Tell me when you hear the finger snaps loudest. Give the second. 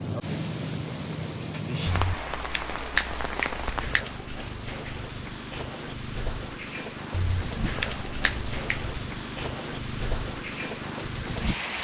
3 s.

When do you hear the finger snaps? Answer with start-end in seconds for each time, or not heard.
1.9-4.0, 7.1-8.9.